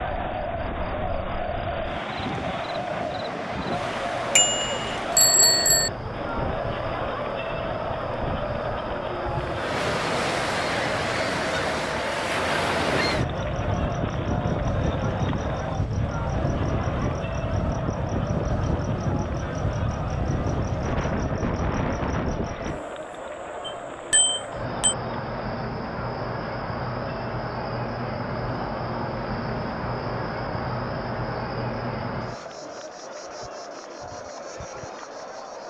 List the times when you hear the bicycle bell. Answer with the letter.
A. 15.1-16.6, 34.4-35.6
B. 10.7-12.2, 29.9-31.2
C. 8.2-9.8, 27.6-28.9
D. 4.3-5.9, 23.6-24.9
D.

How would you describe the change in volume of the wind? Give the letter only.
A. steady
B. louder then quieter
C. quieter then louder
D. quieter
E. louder
E.